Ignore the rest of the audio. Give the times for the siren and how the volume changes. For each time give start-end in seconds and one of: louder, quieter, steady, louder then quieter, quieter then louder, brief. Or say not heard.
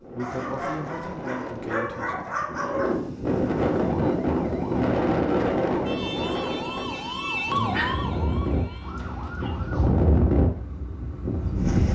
3.8-9.9 louder then quieter.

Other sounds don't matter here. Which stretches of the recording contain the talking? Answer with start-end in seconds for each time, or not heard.
0.0-2.2.